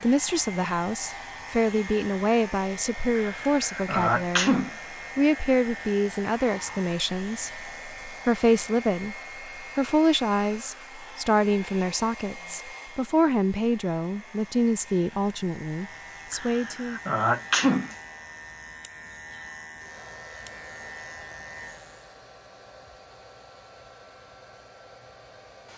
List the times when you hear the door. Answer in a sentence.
The door can't be heard in this clip.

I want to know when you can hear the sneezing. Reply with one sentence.
You can hear the sneezing from 3.1 to 4.8 s and from 16.3 to 17.9 s.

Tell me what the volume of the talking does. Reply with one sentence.
The loudness of the talking stays about the same.